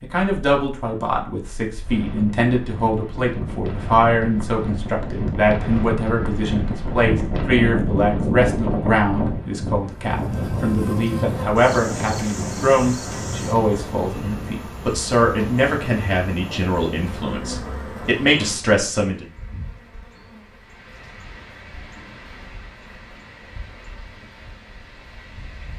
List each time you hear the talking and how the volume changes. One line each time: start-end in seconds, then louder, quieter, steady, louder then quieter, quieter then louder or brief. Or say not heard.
0.0-19.2 steady.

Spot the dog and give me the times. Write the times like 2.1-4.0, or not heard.
not heard.